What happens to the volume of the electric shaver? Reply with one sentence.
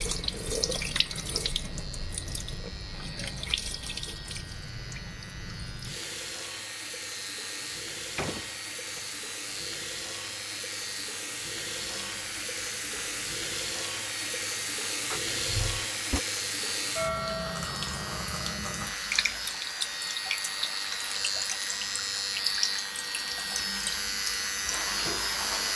The volume of the electric shaver goes up.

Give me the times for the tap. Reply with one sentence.
The tap can be heard from 0.0 to 25.7 s.